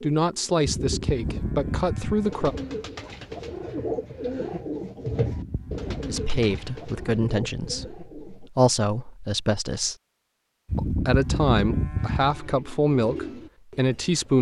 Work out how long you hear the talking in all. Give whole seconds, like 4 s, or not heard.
10 s.